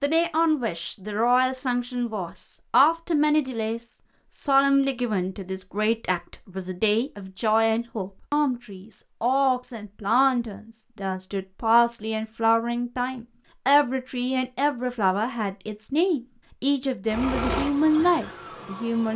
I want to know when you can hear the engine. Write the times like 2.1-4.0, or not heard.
17.1-19.1.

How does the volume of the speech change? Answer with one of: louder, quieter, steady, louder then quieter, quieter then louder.
steady.